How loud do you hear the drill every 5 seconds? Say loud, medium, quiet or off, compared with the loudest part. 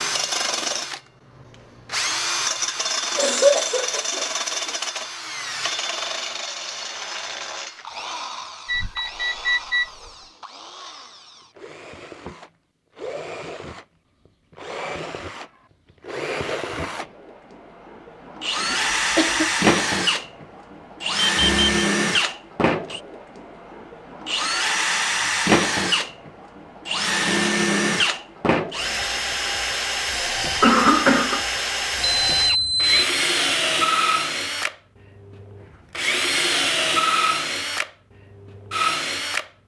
loud, medium, quiet, loud, loud, loud, loud, loud.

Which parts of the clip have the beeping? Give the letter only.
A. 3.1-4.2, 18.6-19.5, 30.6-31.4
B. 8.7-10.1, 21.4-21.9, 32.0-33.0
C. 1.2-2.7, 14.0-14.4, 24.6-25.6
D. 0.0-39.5
B.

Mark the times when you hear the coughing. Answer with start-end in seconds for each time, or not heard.
3.1-4.2, 18.6-19.5, 30.6-31.4.